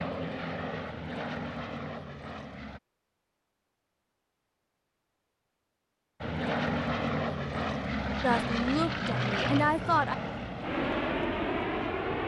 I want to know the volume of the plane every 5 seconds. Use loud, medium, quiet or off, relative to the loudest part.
medium, loud, loud.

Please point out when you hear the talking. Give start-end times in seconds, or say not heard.
8.2-10.2.